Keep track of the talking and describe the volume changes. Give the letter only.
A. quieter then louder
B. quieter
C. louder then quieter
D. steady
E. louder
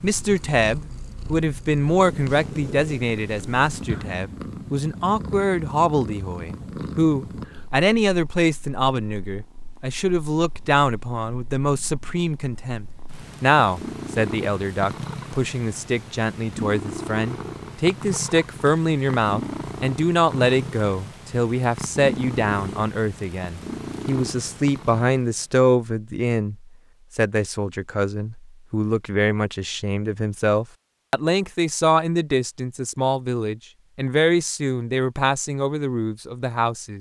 D.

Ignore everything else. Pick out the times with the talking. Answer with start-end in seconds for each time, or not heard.
0.0-36.9.